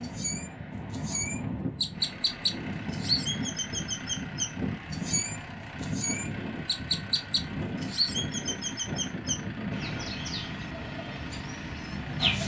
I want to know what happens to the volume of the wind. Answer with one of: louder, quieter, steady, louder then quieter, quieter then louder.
steady.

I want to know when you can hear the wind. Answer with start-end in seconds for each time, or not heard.
0.0-10.2.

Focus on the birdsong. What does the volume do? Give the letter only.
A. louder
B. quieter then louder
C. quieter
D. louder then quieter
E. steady
C.